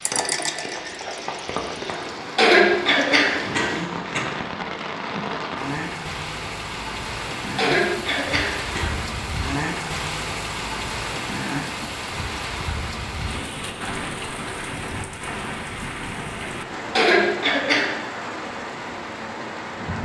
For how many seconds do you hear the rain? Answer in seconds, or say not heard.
20 s.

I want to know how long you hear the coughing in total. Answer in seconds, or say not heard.
4 s.